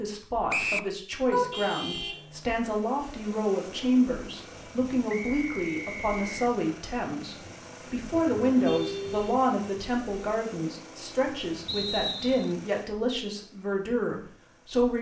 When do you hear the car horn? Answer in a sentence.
The car horn can be heard from 1.3 to 2.5 s and from 8.1 to 9.4 s.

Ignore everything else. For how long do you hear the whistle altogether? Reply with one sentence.
The whistle can be heard for 3 seconds in total.